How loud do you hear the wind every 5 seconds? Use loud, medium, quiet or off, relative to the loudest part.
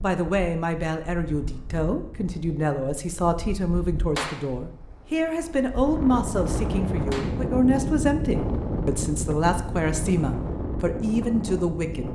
quiet, loud, loud.